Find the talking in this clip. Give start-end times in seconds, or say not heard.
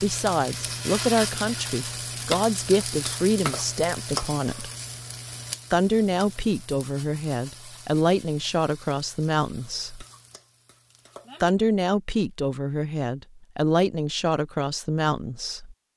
0.0-4.7, 5.7-10.1, 11.4-15.8.